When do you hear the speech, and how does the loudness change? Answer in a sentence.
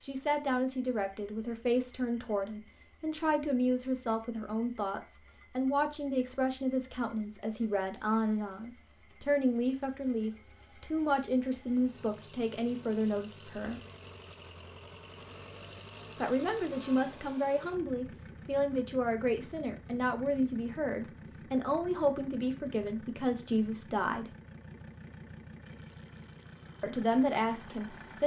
You can hear the speech from 0.0 to 13.8 s, at a steady volume; from 16.1 to 24.4 s, at a steady volume; and briefly from 26.8 to 28.2 s.